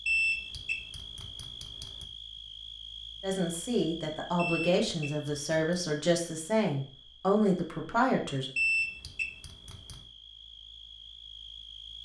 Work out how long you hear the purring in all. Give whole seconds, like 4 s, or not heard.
not heard.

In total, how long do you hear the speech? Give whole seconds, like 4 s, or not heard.
5 s.